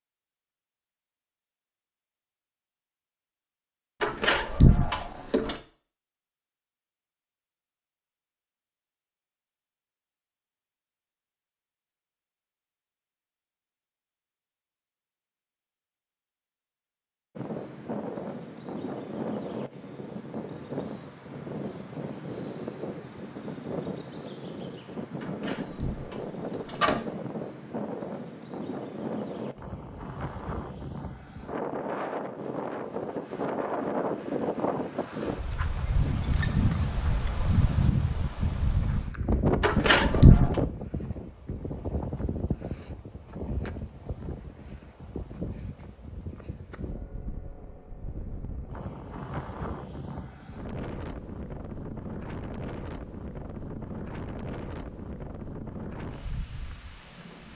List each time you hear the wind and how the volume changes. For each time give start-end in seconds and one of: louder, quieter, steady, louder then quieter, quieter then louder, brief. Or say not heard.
17.4-57.5 louder then quieter.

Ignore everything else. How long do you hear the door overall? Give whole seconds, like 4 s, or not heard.
4 s.